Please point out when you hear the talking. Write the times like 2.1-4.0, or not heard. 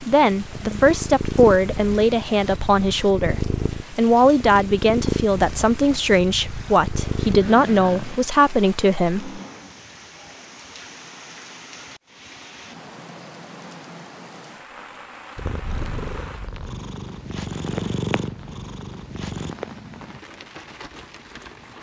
0.0-9.4.